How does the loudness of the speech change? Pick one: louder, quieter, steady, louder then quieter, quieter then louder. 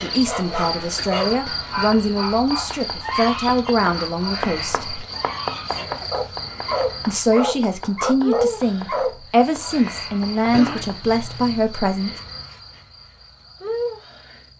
steady.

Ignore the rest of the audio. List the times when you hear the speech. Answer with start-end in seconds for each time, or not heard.
0.0-5.0, 7.0-12.1.